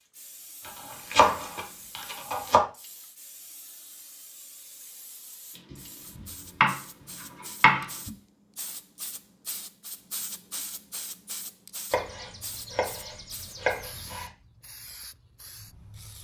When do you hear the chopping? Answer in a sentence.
You can hear the chopping from 0.7 to 2.6 s, from 5.7 to 6.8 s, from 7.6 to 8.1 s and from 11.9 to 14.3 s.